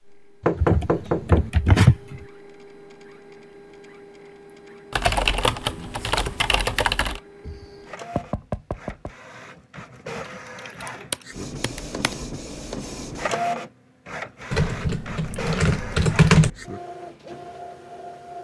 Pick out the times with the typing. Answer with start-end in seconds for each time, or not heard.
0.6-2.2, 4.9-7.2, 10.8-12.2, 14.5-16.5.